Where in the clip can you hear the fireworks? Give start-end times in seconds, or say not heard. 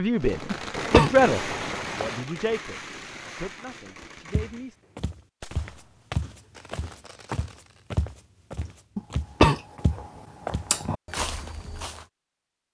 0.1-8.0.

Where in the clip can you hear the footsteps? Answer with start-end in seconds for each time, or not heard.
4.2-12.1.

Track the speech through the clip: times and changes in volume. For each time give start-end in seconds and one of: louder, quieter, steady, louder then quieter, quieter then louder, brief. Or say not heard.
0.0-4.8 quieter.